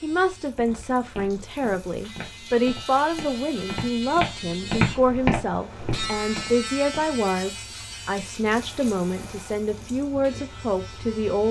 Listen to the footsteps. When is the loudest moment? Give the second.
5 s.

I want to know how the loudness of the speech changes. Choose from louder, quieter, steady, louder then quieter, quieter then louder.
steady.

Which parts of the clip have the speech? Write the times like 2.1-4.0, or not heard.
0.0-11.4.